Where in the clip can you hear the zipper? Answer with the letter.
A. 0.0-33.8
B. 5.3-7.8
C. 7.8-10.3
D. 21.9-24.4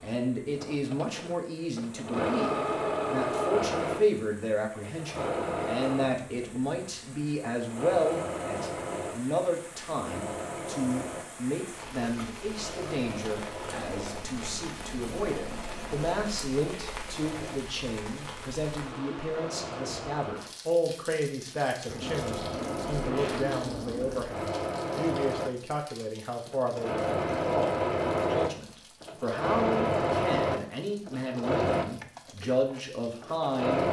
D.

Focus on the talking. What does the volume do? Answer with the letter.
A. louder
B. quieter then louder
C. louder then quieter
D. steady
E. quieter
D.